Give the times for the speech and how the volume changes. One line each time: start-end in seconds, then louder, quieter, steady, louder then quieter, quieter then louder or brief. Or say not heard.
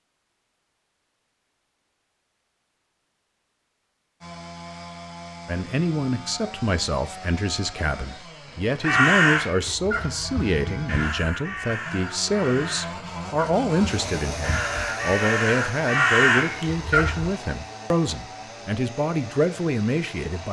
5.5-20.4 steady.